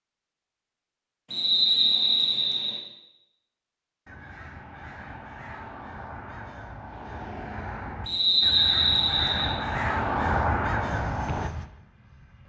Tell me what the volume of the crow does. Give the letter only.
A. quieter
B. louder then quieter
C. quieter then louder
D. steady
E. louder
E.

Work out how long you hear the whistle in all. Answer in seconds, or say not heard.
3 s.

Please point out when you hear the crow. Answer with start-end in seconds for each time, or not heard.
4.0-11.5.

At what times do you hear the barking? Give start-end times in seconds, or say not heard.
not heard.